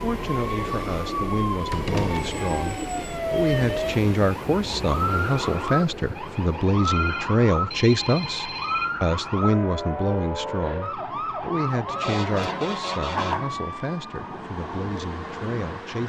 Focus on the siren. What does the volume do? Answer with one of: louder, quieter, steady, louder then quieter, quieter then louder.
steady.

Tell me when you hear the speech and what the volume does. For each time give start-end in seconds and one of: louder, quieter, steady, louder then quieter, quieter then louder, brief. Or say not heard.
0.0-16.0 louder then quieter.